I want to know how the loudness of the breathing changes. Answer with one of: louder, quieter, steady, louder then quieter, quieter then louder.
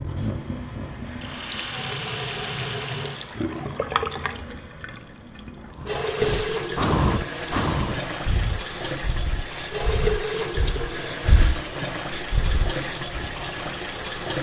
quieter then louder.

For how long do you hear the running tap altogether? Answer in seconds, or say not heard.
14 s.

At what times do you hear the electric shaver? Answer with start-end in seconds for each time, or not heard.
not heard.